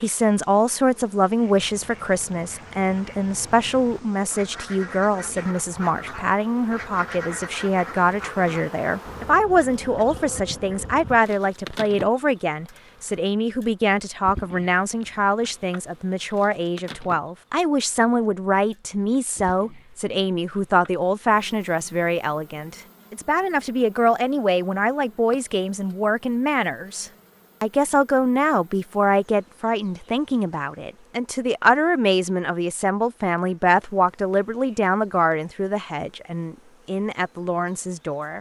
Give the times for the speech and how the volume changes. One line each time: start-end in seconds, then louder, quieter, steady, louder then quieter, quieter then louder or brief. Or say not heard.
0.0-38.3 steady.